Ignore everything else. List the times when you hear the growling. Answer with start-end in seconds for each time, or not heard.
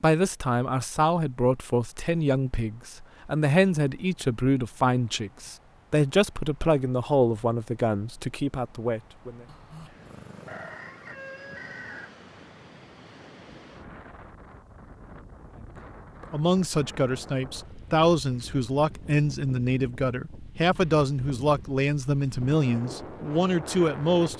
9.4-11.1.